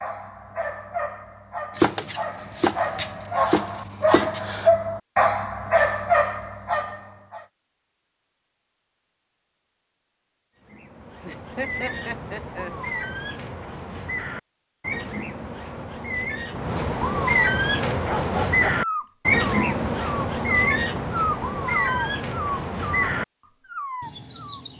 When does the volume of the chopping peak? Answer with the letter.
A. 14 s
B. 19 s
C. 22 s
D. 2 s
D.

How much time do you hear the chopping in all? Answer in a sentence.
The chopping can be heard for 3 seconds in total.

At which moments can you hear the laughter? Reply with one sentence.
The laughter can be heard from 11.2 to 12.7 s.